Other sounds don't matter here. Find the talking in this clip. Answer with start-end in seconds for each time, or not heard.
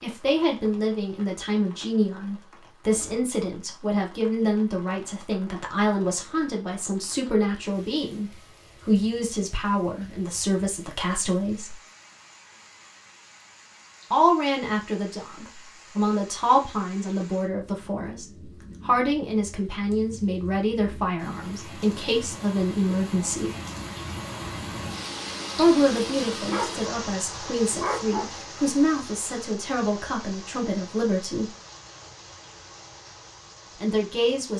0.0-11.8, 14.1-23.6, 25.6-31.5, 33.8-34.5.